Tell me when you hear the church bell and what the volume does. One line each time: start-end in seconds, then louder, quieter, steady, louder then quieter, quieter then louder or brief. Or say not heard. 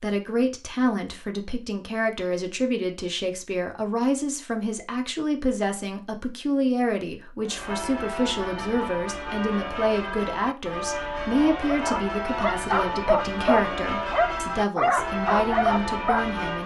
7.4-16.6 steady.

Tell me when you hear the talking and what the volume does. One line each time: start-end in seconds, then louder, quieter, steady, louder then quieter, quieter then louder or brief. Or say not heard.
0.0-16.6 steady.